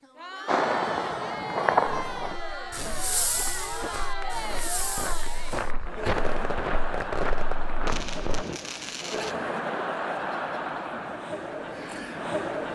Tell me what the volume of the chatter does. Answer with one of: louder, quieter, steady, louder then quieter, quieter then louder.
steady.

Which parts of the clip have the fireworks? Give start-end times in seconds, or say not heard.
0.5-9.3.